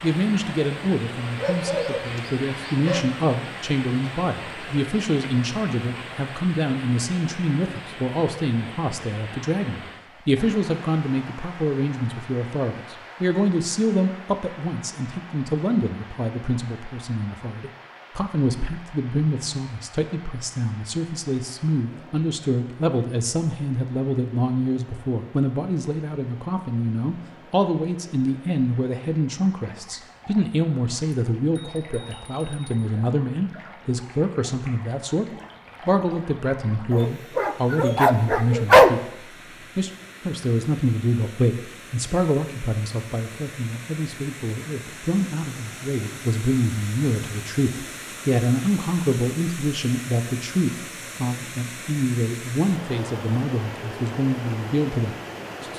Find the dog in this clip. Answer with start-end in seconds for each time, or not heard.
1.4-3.0, 36.9-38.9.